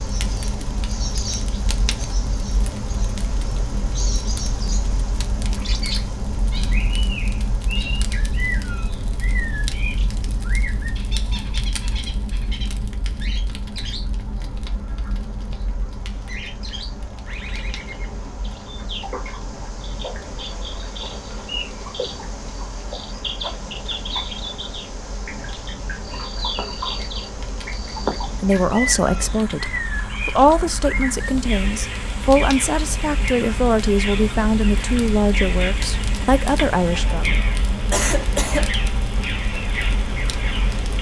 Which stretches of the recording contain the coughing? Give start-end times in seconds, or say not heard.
37.9-38.7.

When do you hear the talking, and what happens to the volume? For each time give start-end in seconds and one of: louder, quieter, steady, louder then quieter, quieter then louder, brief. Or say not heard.
28.4-37.4 steady.